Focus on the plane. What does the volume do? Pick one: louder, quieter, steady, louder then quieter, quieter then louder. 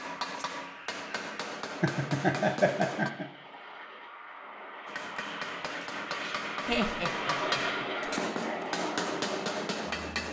louder.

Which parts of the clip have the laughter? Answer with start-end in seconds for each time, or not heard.
1.1-3.2, 6.7-7.8.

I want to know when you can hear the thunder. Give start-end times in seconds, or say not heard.
not heard.